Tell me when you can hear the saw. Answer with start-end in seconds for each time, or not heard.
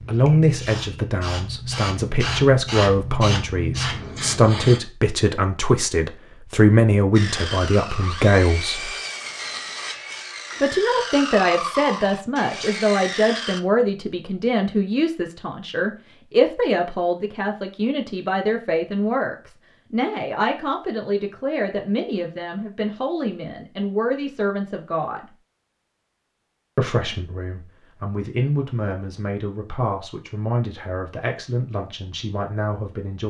7.1-13.6.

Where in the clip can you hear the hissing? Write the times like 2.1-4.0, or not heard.
0.0-4.8.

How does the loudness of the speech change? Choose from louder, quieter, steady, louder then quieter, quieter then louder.
quieter.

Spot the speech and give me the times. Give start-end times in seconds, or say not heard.
0.0-8.9, 10.6-25.2, 26.8-33.2.